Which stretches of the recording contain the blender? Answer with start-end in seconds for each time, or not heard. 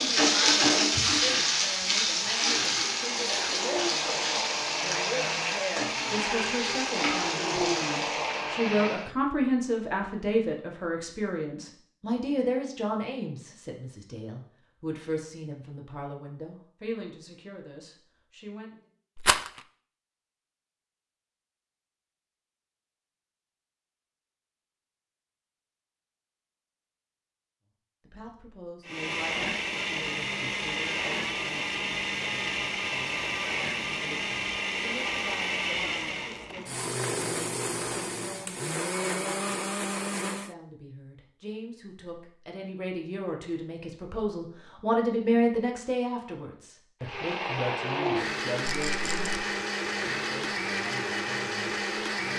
0.0-9.2, 28.9-40.5, 47.0-52.3.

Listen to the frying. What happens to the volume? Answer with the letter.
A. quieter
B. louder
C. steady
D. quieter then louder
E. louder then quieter
A.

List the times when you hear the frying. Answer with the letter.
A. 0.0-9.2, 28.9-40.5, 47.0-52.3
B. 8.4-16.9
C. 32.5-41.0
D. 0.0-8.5
D.